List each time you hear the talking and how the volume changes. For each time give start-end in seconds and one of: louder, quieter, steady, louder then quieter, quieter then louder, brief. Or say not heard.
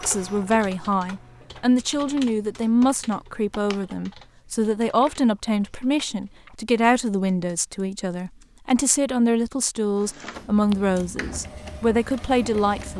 0.0-12.9 steady.